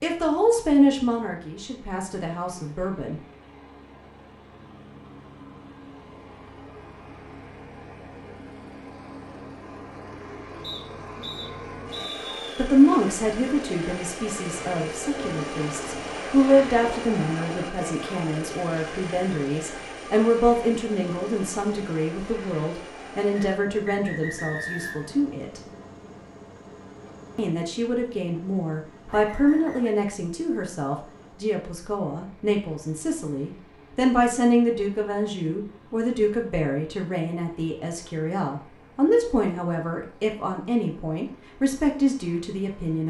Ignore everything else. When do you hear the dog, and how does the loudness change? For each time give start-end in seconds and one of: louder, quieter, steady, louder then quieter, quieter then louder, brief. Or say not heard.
not heard.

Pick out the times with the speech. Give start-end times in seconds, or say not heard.
0.0-3.2, 12.6-25.6, 27.4-43.0.